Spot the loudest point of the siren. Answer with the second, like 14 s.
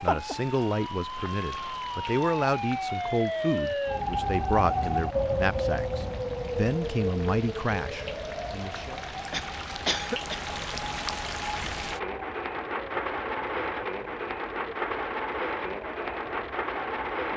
5 s.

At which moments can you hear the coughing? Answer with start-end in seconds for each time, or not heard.
9.3-10.4.